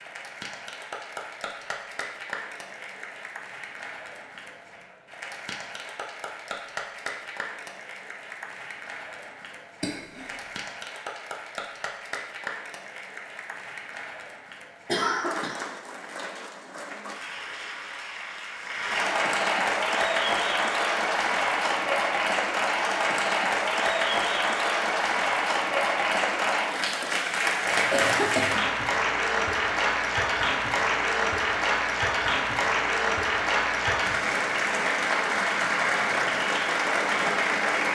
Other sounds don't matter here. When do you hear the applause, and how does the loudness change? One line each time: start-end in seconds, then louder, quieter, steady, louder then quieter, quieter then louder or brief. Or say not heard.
0.0-37.8 louder.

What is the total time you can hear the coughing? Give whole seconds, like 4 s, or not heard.
2 s.